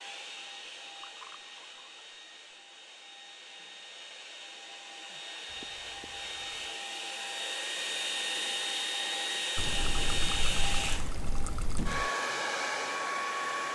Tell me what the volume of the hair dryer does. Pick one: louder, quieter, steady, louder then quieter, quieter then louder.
louder.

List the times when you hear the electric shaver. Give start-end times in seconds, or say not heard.
not heard.